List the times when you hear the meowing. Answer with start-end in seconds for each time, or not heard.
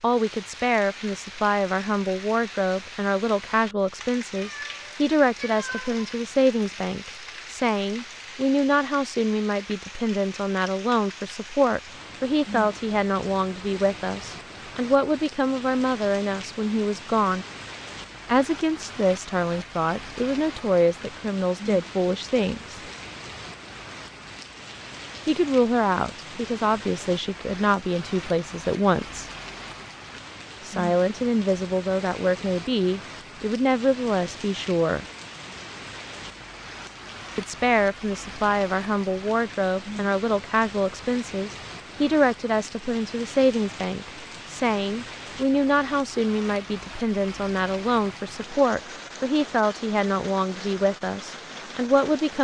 4.3-6.0.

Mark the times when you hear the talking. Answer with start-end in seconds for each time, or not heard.
0.0-17.4, 18.2-22.8, 25.2-29.3, 30.6-35.0, 37.4-52.3.